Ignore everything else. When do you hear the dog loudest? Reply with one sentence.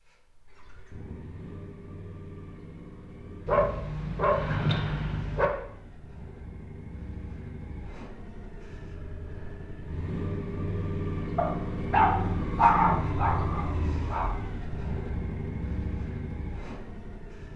The loudest moment of the dog is at 13 seconds.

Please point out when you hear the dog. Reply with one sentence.
You can hear the dog from 3.5 to 5.5 s and from 11.3 to 14.3 s.